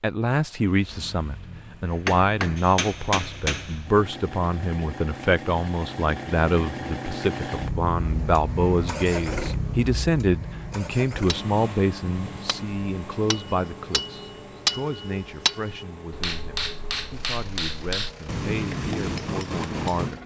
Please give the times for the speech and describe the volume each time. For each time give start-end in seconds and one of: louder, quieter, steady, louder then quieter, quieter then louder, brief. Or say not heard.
0.0-20.2 quieter.